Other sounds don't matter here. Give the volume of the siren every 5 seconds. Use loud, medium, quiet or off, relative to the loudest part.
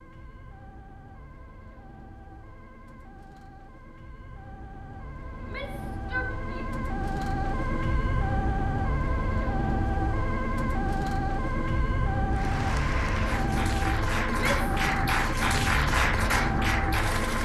quiet, loud, loud, loud.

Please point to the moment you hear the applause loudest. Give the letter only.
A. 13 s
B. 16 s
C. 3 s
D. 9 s
B.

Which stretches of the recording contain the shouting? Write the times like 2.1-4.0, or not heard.
5.3-6.7, 14.2-14.8.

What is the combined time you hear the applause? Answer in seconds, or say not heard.
5 s.